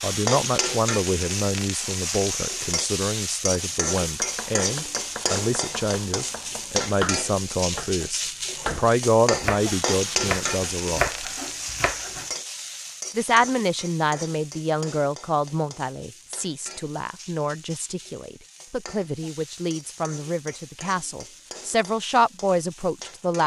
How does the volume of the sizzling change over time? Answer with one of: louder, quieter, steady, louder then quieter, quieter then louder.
quieter.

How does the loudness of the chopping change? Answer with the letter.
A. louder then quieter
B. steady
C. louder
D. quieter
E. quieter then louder
C.